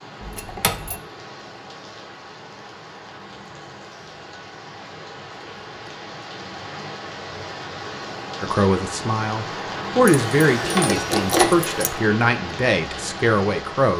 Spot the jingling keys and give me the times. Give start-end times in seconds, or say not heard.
0.2-1.0, 10.1-11.9.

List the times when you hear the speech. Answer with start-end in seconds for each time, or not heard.
8.4-13.9.